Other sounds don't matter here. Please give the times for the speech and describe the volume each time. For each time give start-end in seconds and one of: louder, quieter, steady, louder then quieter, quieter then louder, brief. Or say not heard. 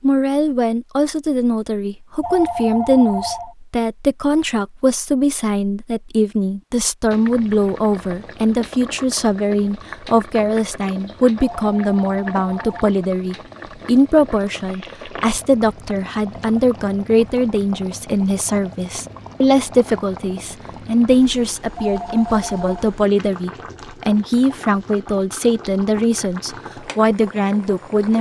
0.0-28.1 steady.